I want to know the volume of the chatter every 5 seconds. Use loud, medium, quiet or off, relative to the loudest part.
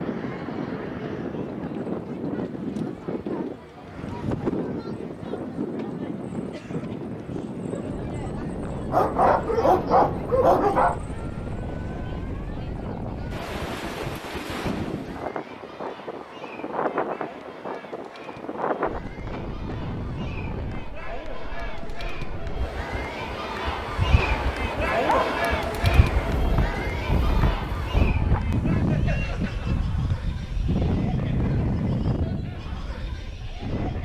quiet, quiet, quiet, quiet, loud, loud, quiet.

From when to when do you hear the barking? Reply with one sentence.
The barking can be heard from 8.9 to 11.0 s and from 24.1 to 25.4 s.